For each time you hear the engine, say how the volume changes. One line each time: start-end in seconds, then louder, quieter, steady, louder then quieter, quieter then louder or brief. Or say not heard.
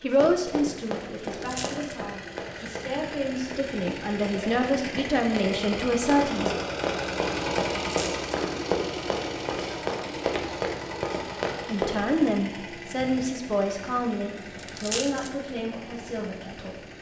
0.0-16.9 louder then quieter.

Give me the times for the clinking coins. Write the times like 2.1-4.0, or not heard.
1.2-1.9, 7.8-8.2, 14.6-15.3.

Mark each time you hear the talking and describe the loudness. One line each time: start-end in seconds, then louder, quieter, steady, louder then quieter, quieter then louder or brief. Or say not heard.
0.0-6.5 quieter then louder
11.7-16.8 quieter.